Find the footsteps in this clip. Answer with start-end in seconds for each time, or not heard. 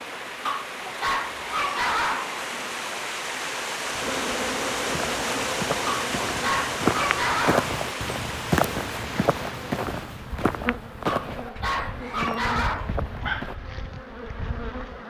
4.9-13.6.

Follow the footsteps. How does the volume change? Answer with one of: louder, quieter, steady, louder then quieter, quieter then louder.
louder then quieter.